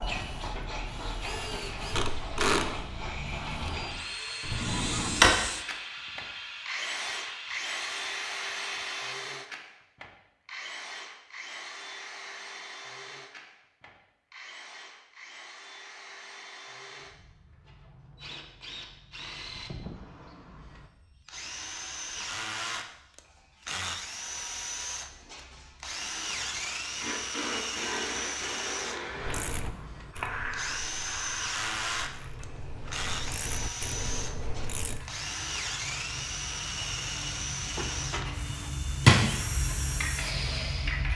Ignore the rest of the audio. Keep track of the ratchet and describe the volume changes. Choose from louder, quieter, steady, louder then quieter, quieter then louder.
quieter then louder.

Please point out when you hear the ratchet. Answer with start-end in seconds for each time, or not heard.
29.2-35.0.